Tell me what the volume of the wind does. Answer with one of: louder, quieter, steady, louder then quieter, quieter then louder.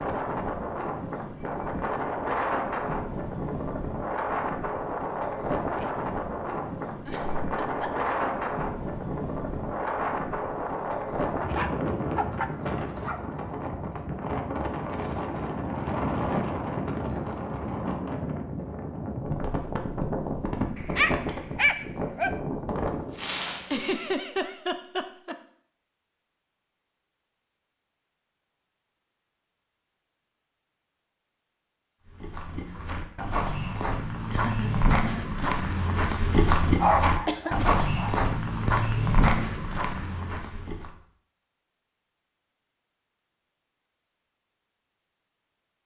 steady.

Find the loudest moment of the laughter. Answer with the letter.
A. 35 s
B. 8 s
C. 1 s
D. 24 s
D.